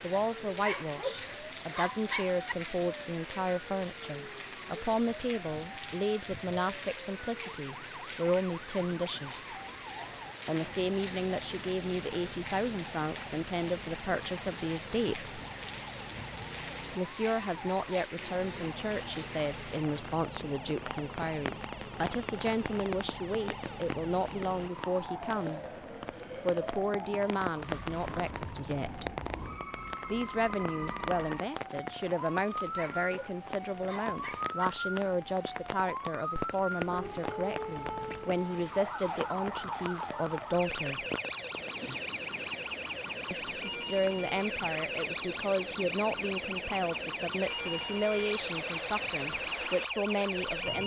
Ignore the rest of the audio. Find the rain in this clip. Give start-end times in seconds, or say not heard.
0.0-50.8.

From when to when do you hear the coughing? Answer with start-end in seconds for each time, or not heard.
not heard.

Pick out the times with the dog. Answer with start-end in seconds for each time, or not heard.
0.6-2.5, 32.8-34.6.